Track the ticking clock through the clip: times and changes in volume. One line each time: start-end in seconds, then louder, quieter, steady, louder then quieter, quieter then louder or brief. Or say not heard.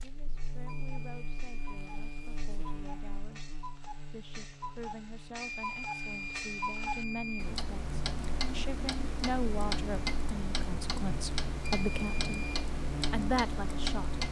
0.0-14.2 louder.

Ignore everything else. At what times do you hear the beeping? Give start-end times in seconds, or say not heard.
0.7-2.2, 5.4-7.6, 11.8-12.6.